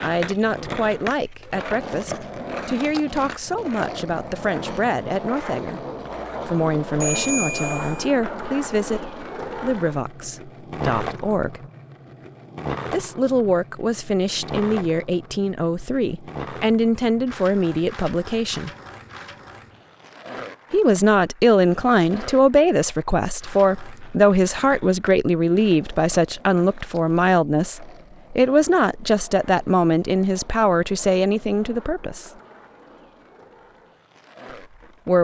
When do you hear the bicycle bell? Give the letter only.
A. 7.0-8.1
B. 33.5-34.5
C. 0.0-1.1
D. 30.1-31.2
A.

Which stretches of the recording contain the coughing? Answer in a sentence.
You can't hear the coughing here.